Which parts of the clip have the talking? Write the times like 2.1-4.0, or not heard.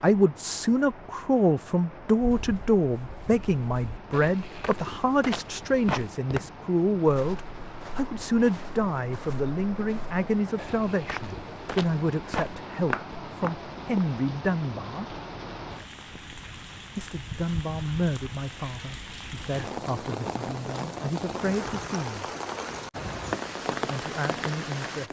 0.0-15.2, 16.9-22.2, 23.9-25.0.